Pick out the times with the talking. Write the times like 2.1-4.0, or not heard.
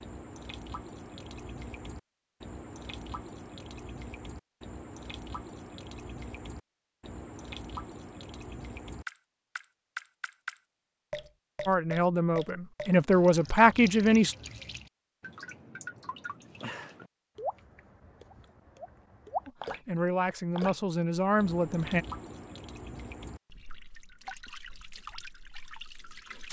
11.7-14.3, 19.4-22.1.